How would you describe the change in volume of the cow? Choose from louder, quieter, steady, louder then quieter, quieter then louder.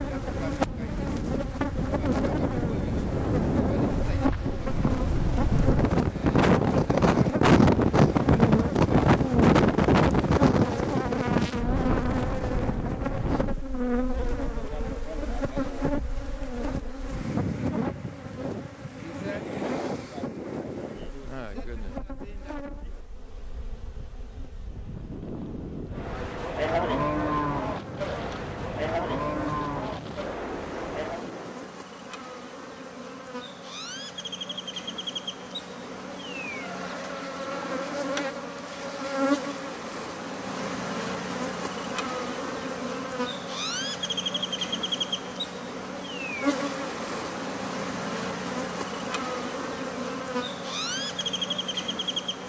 quieter.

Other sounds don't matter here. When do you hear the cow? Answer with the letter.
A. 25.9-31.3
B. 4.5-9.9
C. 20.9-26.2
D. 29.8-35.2
A.